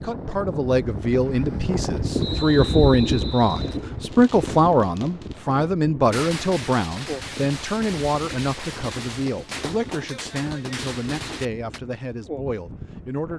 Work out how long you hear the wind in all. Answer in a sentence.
The wind can be heard for 13 seconds in total.